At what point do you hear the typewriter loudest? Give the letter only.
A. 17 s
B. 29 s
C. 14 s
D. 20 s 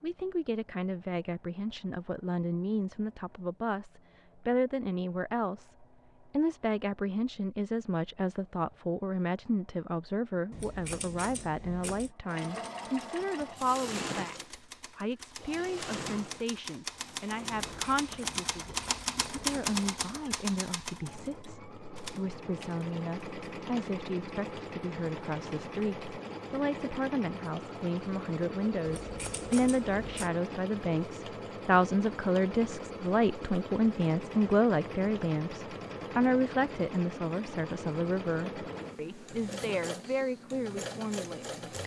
D.